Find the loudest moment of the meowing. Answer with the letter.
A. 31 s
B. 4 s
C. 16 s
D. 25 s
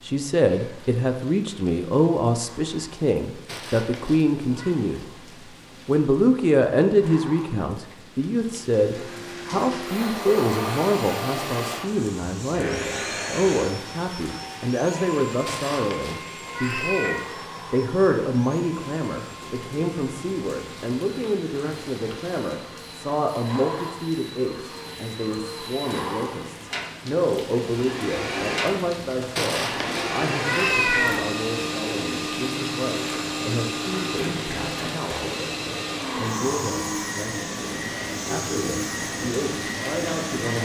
A.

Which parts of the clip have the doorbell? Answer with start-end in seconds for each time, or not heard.
not heard.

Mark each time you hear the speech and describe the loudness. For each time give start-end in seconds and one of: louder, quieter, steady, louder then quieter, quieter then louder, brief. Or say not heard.
0.0-5.0 steady
5.8-40.5 quieter.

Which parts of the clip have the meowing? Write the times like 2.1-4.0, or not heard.
3.5-4.8, 15.4-17.2, 29.4-31.3.